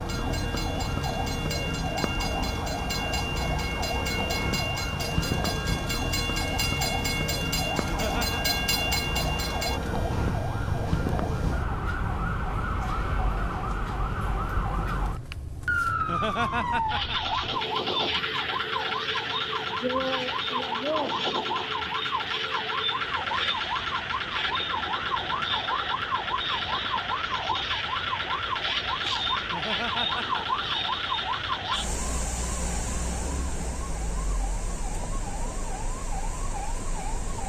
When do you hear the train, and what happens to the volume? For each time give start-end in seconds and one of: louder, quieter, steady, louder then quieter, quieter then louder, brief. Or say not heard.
0.0-37.4 quieter.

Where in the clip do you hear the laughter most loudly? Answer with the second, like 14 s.
16 s.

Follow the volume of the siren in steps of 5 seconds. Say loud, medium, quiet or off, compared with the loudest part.
loud, loud, loud, loud, loud, loud, loud, medium.